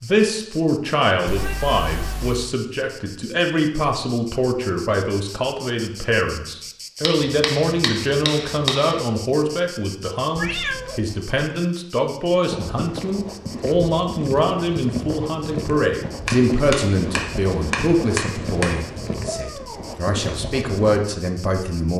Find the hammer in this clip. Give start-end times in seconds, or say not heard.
7.0-9.0, 16.2-18.9.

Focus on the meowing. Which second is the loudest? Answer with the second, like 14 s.
11 s.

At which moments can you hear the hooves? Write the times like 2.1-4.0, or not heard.
12.5-21.0.